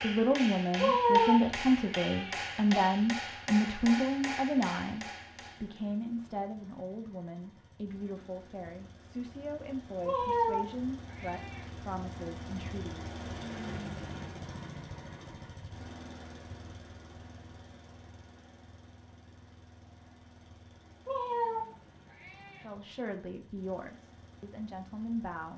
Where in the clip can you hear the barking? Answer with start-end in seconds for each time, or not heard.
not heard.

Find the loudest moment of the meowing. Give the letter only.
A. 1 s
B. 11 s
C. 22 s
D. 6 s
A.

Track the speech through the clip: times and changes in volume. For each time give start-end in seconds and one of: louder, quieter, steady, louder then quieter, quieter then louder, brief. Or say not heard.
0.0-13.1 quieter
22.6-25.5 brief.